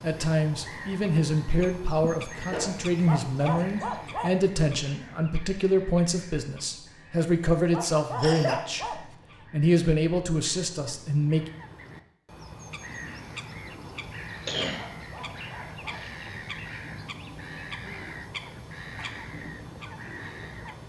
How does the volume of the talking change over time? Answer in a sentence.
The volume of the talking stays about the same.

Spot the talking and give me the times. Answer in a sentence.
The talking can be heard from 0.0 to 11.5 s.